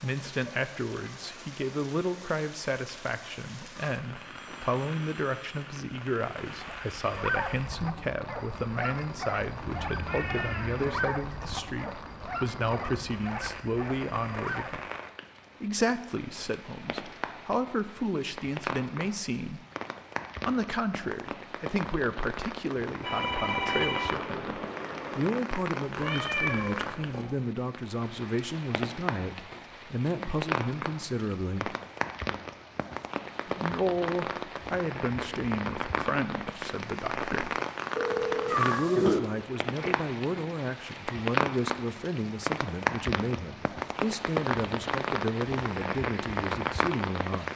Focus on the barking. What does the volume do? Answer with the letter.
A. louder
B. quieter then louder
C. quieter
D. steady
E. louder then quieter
C.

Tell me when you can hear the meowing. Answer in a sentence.
The meowing can be heard from 9.6 to 11.2 s, from 25.9 to 27.2 s and from 38.5 to 39.2 s.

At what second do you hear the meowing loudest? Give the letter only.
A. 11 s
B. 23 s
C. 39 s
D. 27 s
C.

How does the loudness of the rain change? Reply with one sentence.
The volume of the rain goes up.